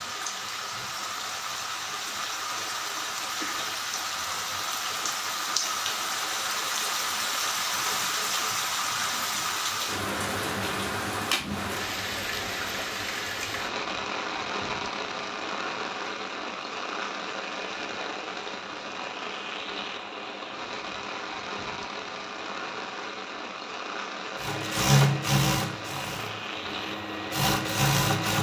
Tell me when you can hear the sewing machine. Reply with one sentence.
The sewing machine can be heard from 24.4 to 28.3 s.